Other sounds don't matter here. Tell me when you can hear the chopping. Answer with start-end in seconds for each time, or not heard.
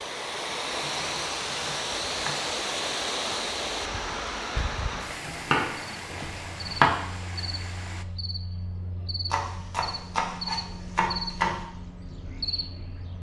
0.8-2.5, 4.9-6.9, 9.3-11.6.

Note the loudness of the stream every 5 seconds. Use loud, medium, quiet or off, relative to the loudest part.
loud, medium, off.